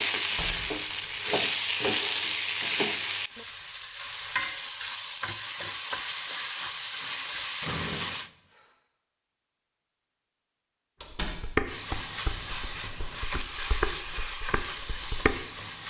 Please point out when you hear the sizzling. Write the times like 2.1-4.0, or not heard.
0.0-8.3, 11.7-15.8.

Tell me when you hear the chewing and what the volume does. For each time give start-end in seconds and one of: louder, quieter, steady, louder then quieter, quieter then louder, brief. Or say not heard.
not heard.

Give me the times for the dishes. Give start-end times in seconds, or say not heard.
11.2-15.4.